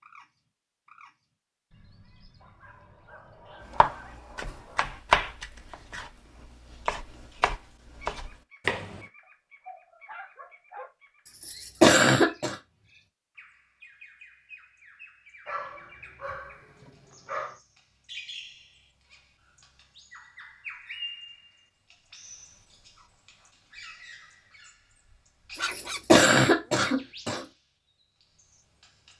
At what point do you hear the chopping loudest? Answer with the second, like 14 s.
5 s.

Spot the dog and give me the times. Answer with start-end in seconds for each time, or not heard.
2.4-5.0, 9.2-10.9, 15.4-17.6, 25.6-27.0.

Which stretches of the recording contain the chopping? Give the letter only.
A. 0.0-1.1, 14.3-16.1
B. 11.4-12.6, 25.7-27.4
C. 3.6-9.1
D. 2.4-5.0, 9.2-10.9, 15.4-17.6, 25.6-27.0
C.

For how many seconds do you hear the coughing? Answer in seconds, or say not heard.
3 s.